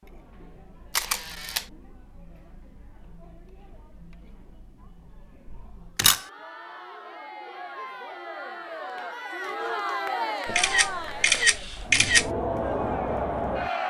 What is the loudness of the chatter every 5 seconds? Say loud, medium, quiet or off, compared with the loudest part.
quiet, medium, loud.